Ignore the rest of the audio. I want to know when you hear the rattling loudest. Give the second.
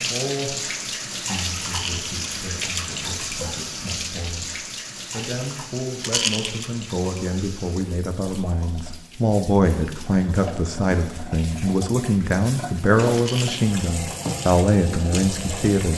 6 s.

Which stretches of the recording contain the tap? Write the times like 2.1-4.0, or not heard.
0.0-15.9.